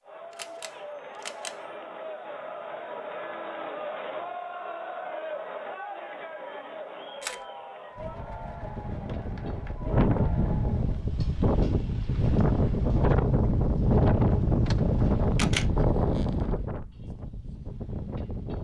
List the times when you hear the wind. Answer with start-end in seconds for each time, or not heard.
8.0-18.5.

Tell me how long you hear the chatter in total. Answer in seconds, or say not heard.
11 s.